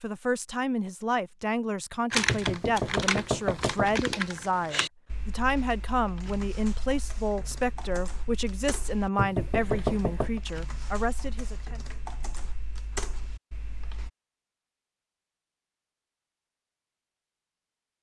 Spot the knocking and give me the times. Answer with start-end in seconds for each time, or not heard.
2.2-4.0, 9.2-10.4.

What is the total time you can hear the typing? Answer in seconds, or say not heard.
12 s.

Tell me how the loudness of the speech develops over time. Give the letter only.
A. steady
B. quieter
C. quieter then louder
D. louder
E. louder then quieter
A.